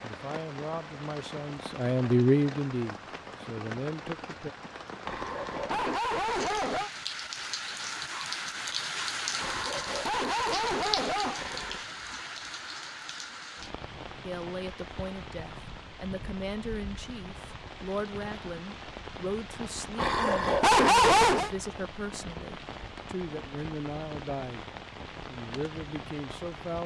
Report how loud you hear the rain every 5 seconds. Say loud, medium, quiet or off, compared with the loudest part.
medium, loud, loud, medium, medium, medium.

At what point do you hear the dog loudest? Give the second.
21 s.